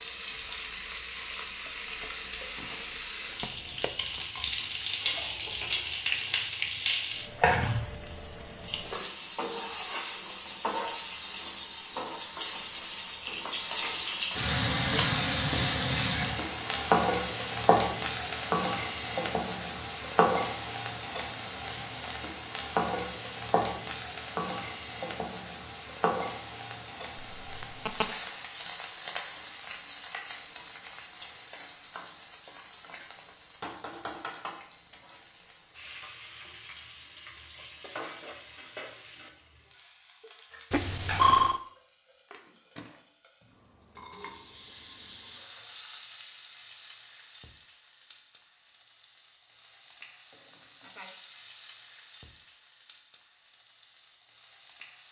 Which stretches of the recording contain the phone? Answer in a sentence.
The phone can be heard from 3.4 to 4.2 s, from 27.4 to 28.1 s and from 40.7 to 41.6 s.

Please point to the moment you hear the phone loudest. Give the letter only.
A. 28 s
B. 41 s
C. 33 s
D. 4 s
B.